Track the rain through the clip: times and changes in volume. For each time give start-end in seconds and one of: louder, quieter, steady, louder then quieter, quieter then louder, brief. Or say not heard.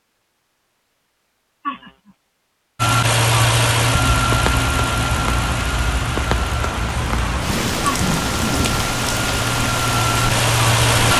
4.0-11.1 steady.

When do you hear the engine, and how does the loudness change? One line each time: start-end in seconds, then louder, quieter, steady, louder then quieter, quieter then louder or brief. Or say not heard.
2.8-11.1 quieter then louder.